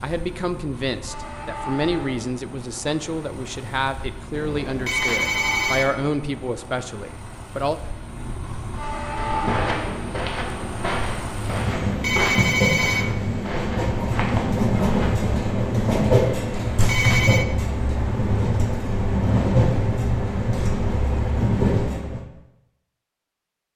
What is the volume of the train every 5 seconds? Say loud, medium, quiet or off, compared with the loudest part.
quiet, medium, loud, loud, loud.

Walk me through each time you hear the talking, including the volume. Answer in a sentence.
You can hear the talking from 0.0 to 7.8 s, at a steady volume.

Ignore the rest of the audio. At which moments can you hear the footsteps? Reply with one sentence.
The footsteps can be heard from 9.2 to 15.2 s.